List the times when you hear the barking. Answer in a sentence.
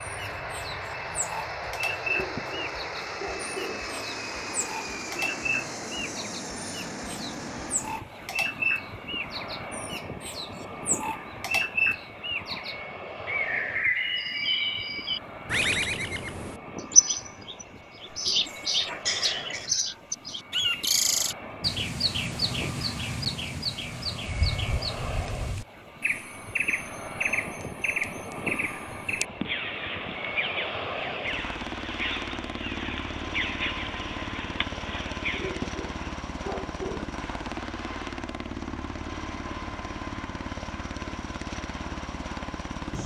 The barking can be heard from 2.0 to 3.8 s and from 35.3 to 37.0 s.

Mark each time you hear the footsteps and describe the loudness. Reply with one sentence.
The footsteps can't be heard in this clip.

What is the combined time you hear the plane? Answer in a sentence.
The plane can be heard for 43 seconds in total.